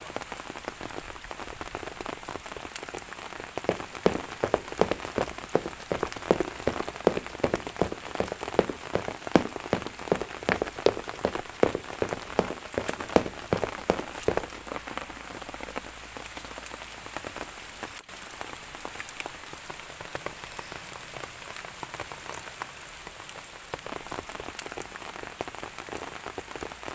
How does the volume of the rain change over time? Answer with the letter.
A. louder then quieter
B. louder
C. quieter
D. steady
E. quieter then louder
D.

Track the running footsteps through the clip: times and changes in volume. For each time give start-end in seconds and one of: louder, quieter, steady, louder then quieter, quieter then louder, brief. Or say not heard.
3.6-14.6 steady.